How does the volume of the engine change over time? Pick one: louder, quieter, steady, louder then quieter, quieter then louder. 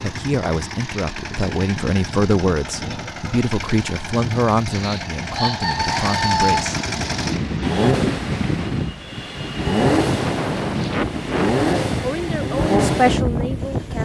louder.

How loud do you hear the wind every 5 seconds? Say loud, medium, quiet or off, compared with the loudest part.
off, loud, loud.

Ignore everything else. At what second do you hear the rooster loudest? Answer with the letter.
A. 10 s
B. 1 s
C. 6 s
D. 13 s
C.